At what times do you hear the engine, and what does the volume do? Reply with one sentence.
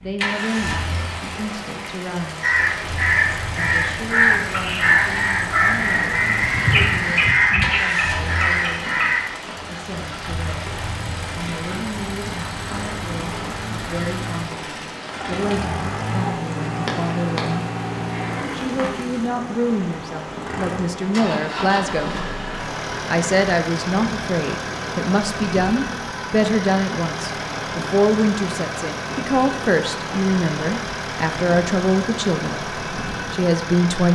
You can hear the engine from 0.1 to 34.1 s, at a steady volume.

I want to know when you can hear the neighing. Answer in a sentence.
You can hear the neighing from 6.4 to 7.8 s and from 18.1 to 18.8 s.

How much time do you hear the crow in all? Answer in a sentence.
You can hear the crow for 7 seconds altogether.